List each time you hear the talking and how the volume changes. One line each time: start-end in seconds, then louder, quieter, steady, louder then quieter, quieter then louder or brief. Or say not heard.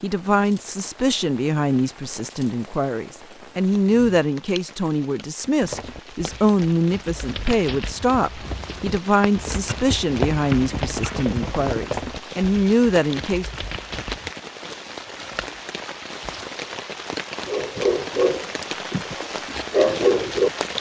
0.0-13.4 steady.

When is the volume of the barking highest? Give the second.
20 s.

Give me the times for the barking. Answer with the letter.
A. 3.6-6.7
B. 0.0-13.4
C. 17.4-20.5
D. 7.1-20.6
C.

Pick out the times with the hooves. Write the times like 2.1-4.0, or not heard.
5.6-14.3.